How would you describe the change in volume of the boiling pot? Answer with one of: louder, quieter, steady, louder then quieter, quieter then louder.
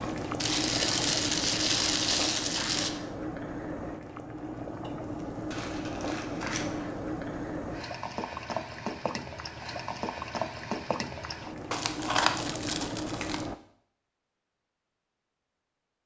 steady.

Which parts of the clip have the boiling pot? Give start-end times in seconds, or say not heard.
0.0-13.6.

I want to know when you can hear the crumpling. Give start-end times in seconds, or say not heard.
0.3-2.9, 5.5-6.7, 11.7-13.4.